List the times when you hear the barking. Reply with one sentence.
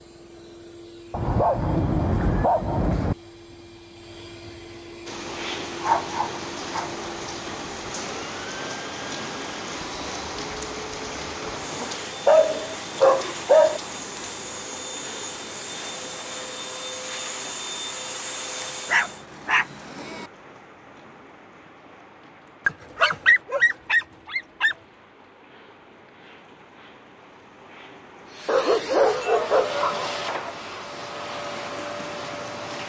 You can hear the barking from 1.1 to 3.1 s, from 5.8 to 6.9 s, from 11.8 to 13.8 s, from 18.9 to 20.2 s, from 22.6 to 24.8 s and from 28.4 to 30.1 s.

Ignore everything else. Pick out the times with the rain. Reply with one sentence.
You can hear the rain from 5.0 to 32.8 s.